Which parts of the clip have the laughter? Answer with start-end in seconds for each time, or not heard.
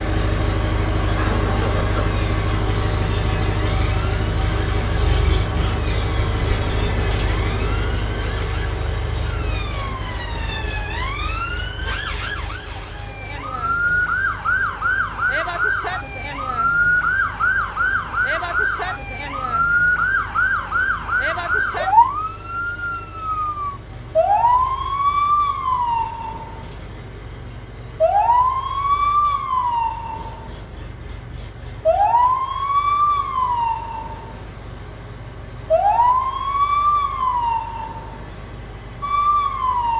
1.1-2.1.